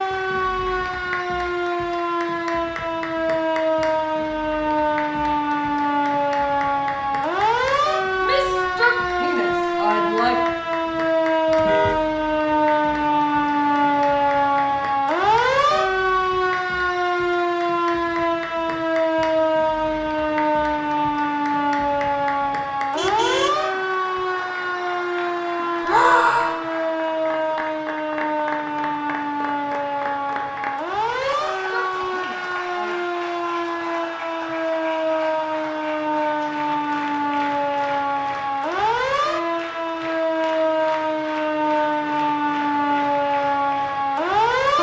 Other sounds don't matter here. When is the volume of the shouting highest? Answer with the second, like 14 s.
26 s.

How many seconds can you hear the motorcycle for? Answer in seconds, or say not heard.
not heard.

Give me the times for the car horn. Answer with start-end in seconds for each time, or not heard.
11.6-12.1, 22.9-23.6.